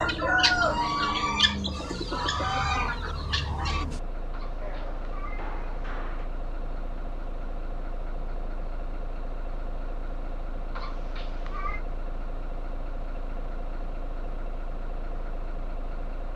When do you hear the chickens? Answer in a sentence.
You can hear the chickens from 0.0 to 3.9 s.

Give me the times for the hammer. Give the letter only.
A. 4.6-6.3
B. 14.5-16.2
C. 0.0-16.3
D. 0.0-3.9
A.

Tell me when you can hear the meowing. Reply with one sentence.
You can hear the meowing from 4.3 to 6.0 s and from 10.8 to 11.8 s.